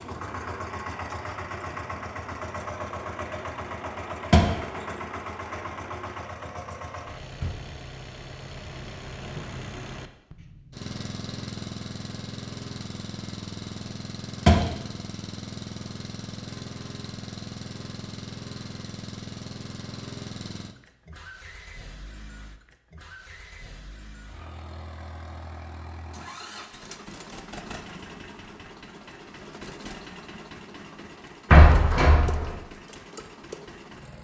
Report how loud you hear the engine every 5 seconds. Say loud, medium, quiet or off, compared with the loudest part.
loud, loud, loud, loud, medium, medium, medium.